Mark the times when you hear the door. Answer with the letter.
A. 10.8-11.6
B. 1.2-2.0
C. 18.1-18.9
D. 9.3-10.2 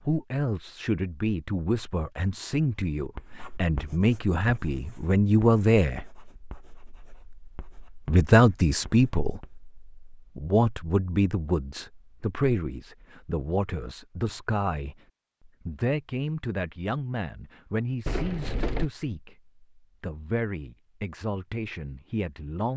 C.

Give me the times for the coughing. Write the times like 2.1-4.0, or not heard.
not heard.